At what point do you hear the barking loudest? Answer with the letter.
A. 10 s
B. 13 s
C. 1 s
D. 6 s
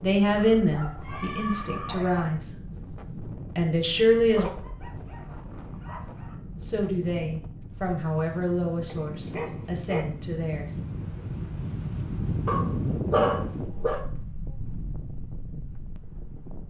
B.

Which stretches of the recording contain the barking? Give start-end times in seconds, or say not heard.
0.3-2.3, 4.3-6.3, 8.8-10.1, 12.4-14.0.